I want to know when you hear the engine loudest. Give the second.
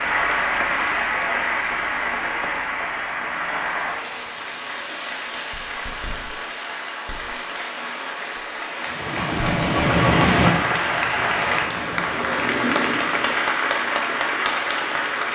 10 s.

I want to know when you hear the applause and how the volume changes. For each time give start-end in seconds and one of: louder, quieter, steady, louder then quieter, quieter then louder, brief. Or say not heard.
0.0-15.3 quieter then louder.